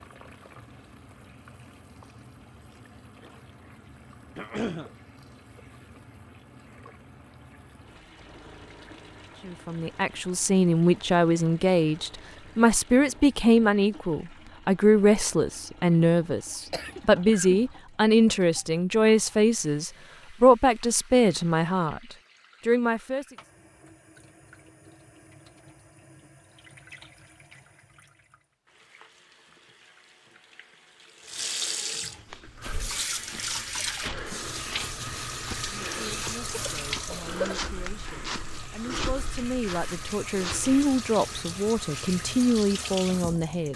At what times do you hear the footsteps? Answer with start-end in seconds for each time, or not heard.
32.2-41.0.